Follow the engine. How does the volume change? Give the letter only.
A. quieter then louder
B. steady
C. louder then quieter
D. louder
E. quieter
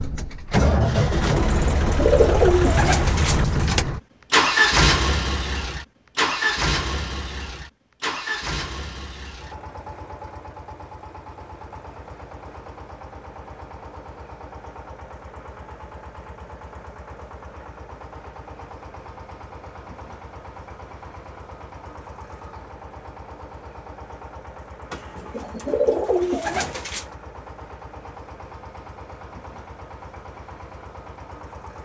E.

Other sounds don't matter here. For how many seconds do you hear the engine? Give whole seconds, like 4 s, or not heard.
32 s.